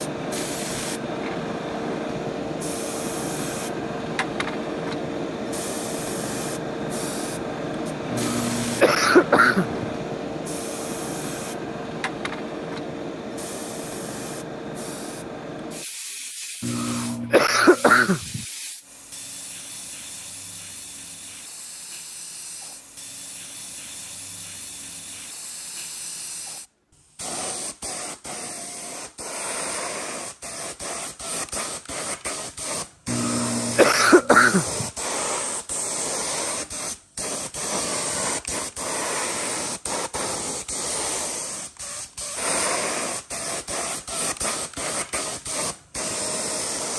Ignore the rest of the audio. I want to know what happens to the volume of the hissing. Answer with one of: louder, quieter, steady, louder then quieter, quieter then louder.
quieter then louder.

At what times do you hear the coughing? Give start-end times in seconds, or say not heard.
8.1-9.9, 16.6-18.4, 33.0-34.9.